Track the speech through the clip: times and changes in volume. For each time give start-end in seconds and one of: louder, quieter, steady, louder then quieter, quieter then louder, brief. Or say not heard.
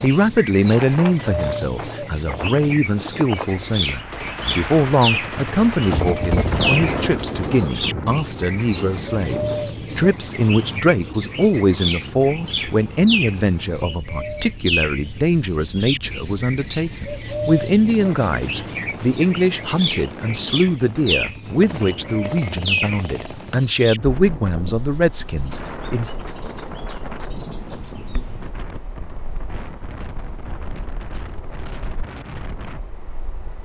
0.0-26.1 steady.